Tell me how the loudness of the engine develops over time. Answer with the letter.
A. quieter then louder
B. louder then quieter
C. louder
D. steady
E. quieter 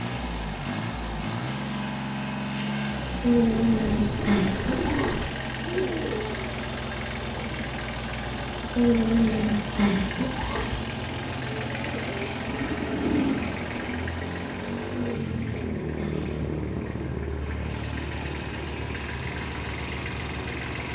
D.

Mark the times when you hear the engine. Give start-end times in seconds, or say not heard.
0.0-20.9.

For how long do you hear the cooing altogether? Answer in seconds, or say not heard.
5 s.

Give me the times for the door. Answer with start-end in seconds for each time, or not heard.
not heard.